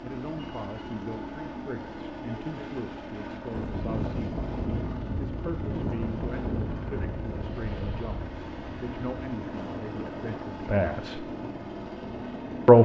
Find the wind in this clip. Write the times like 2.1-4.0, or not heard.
3.5-12.8.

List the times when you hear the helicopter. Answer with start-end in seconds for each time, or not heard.
0.0-12.8.